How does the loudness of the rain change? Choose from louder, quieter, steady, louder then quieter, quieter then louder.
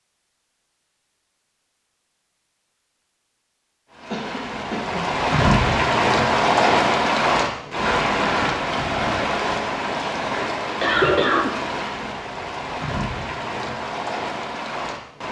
quieter.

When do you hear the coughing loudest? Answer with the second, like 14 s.
11 s.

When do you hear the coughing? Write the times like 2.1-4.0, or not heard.
4.1-5.2, 10.8-11.6.